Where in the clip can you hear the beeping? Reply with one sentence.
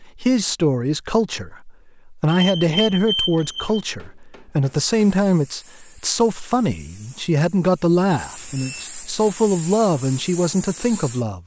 You can hear the beeping from 2.4 to 3.8 s and from 8.2 to 8.9 s.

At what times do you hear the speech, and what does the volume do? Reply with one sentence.
You can hear the speech from 0.0 to 11.4 s, at a steady volume.